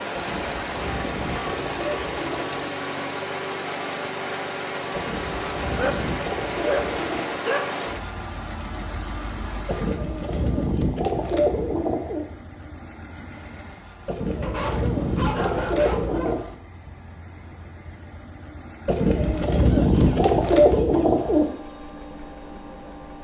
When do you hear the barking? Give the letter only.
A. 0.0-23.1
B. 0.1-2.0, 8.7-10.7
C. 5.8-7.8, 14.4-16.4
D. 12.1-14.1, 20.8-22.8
C.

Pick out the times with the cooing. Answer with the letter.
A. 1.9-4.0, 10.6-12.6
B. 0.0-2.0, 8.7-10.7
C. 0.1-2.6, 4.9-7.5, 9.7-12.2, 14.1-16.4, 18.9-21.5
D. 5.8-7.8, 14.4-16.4
C.